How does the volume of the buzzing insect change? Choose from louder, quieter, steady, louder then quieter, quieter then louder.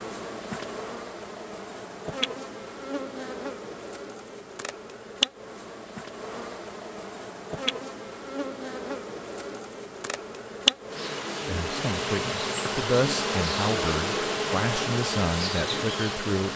louder.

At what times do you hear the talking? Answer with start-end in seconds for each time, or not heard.
11.4-16.5.